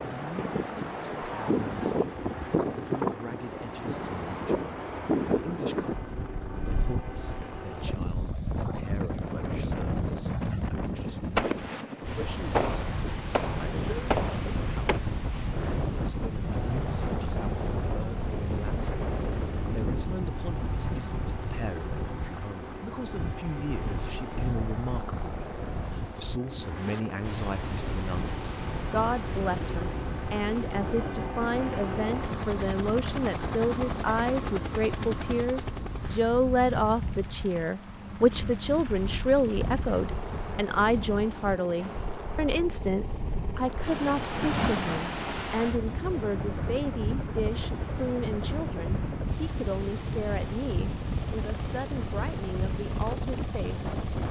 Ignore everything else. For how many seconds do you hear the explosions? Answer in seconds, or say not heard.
4 s.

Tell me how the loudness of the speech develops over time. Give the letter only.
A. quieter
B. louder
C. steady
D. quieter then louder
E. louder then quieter
E.